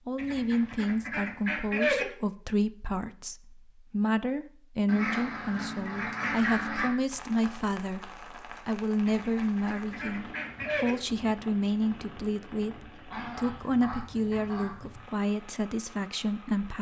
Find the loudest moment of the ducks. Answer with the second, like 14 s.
2 s.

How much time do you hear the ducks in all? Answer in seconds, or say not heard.
8 s.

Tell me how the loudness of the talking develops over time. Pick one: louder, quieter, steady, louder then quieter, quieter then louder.
steady.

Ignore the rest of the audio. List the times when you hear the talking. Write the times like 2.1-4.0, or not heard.
0.1-16.7.